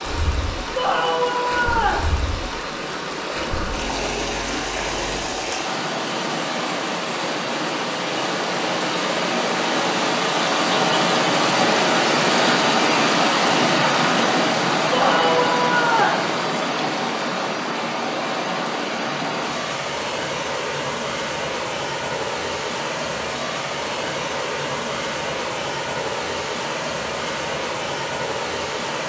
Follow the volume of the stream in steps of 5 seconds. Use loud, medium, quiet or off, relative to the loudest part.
medium, medium, loud, medium, medium, medium.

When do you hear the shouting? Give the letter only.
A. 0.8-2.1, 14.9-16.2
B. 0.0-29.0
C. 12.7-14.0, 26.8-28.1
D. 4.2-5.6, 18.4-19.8
A.